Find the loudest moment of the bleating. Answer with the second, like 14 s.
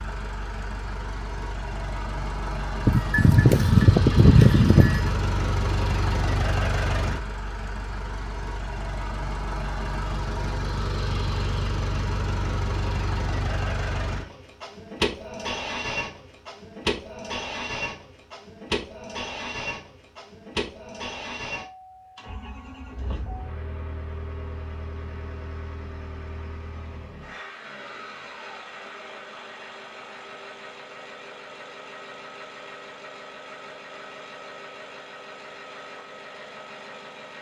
4 s.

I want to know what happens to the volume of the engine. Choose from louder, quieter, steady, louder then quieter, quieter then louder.
quieter.